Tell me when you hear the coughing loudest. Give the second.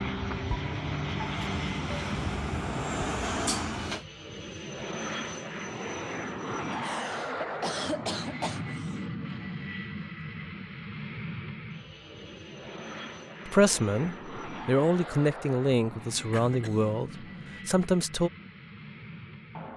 8 s.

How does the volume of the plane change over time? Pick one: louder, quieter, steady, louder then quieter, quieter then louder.
quieter.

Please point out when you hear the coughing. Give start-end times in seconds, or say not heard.
3.5-4.0, 6.7-8.9, 16.3-16.9.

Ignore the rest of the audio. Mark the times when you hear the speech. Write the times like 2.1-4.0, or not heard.
13.4-18.3.